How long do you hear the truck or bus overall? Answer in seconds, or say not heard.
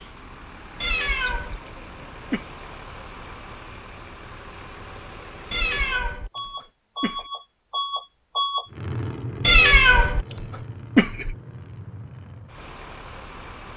14 s.